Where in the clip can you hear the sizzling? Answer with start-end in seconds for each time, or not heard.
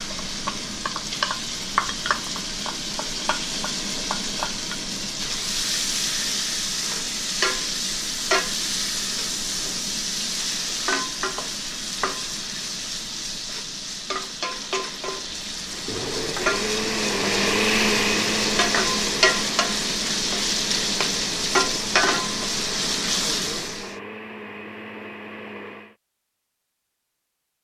0.0-23.9.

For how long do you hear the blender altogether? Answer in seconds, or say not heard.
10 s.